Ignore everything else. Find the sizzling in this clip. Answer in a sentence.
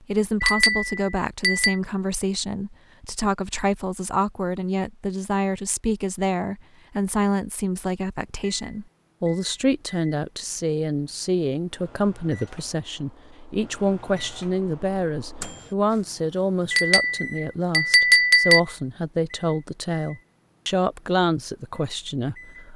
You can't hear the sizzling here.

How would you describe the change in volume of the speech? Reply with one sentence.
The loudness of the speech stays about the same.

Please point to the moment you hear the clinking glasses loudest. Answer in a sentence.
The loudest moment of the clinking glasses is at 18 seconds.